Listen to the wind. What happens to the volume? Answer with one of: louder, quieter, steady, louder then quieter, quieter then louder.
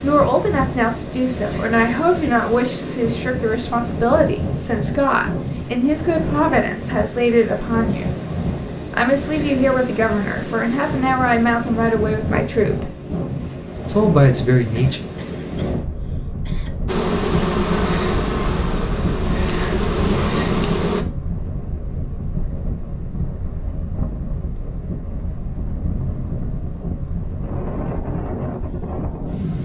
steady.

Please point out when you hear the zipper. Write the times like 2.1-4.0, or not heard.
not heard.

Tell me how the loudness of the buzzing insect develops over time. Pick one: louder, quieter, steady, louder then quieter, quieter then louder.
quieter then louder.